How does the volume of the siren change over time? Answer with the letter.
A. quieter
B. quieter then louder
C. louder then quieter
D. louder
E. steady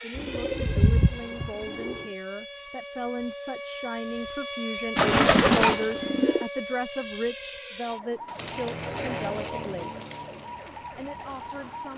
C.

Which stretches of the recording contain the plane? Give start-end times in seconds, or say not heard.
8.3-11.9.